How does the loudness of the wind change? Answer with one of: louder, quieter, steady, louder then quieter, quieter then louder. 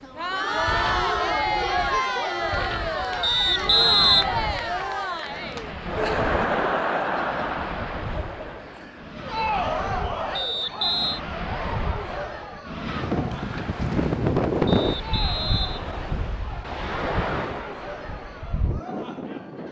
louder then quieter.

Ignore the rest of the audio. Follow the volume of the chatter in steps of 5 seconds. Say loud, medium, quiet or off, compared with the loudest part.
loud, loud, medium, quiet.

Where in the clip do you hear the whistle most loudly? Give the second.
4 s.